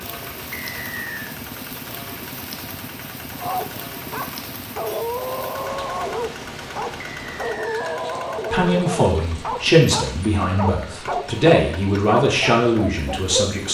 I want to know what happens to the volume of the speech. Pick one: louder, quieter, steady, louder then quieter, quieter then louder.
steady.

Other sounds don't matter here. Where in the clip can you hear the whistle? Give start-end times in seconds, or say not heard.
0.5-1.1, 7.0-8.0.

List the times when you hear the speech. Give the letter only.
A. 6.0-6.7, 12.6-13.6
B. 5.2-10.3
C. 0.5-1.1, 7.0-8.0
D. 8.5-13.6
D.